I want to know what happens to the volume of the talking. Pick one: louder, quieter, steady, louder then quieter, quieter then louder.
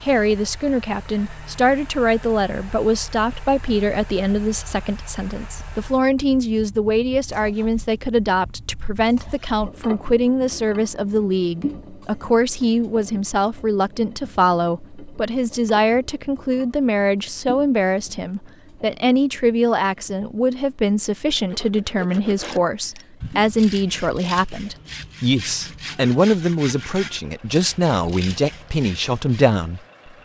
steady.